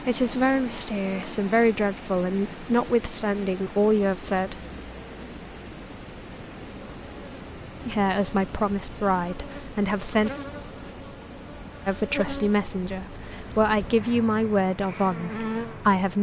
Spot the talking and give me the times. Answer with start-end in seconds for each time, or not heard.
0.0-4.6, 7.8-10.3, 11.8-16.1.